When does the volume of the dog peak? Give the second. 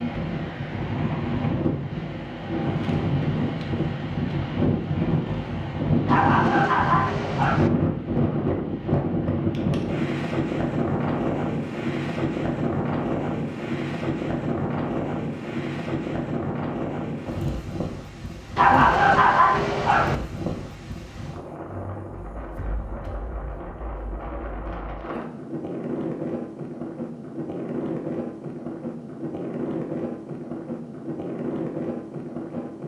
19 s.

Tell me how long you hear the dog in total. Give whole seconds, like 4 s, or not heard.
3 s.